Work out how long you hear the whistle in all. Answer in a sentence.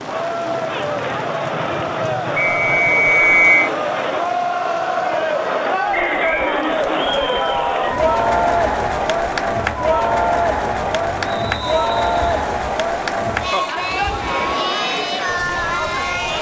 The whistle can be heard for 3 seconds in total.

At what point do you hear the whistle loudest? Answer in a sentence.
The loudest moment of the whistle is at 3 seconds.